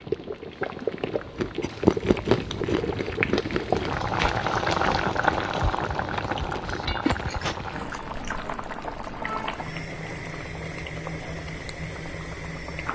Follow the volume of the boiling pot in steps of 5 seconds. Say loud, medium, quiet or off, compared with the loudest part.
loud, loud, medium.